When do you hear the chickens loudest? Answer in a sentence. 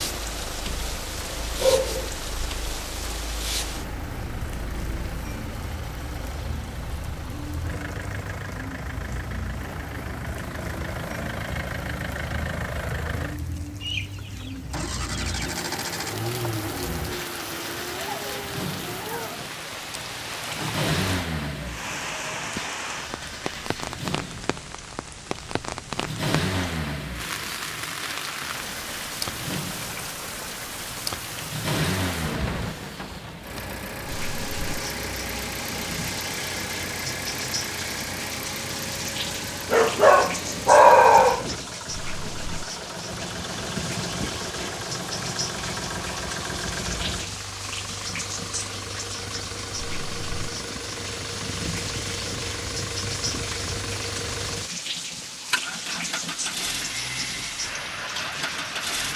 The loudest moment of the chickens is at 14 seconds.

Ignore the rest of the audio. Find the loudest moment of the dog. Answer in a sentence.
The loudest moment of the dog is at 41 seconds.